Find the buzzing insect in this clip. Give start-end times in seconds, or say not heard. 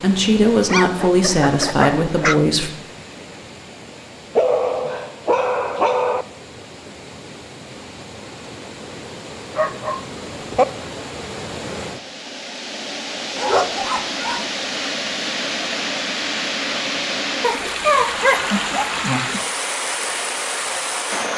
not heard.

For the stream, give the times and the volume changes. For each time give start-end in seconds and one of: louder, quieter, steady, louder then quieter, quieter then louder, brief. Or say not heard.
0.0-21.3 louder.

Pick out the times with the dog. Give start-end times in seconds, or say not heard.
0.7-2.4, 4.3-6.2, 9.6-10.7, 13.3-14.9, 17.4-19.4.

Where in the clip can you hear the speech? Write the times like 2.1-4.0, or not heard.
0.0-2.7.